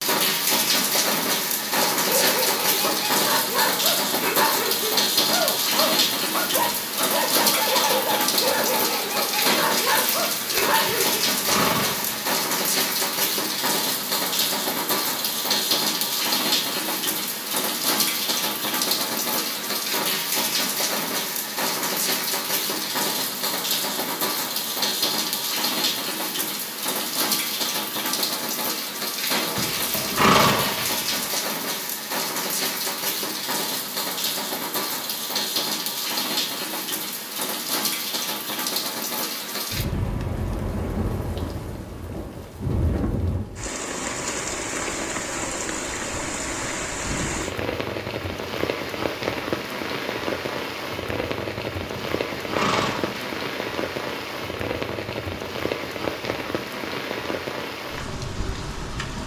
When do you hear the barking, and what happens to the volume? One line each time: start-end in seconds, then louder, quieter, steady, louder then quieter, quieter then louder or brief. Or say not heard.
1.9-11.2 steady.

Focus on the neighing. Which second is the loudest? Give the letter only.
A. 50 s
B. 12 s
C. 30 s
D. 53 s
C.